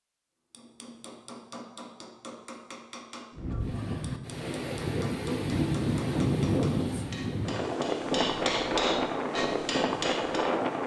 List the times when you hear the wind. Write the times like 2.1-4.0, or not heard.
3.4-10.8.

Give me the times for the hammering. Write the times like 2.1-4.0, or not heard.
0.5-10.5.